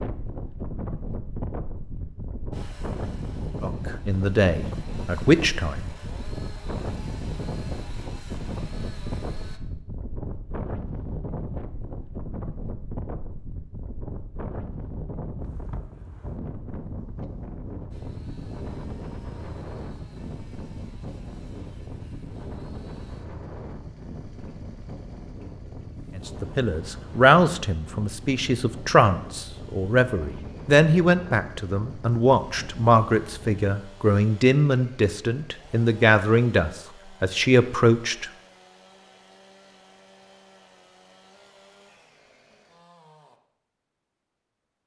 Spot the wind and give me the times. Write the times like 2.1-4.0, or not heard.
0.0-33.6.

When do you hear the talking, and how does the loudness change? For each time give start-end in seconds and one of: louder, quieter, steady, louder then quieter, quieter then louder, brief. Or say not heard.
3.6-5.8 brief
26.1-38.3 steady.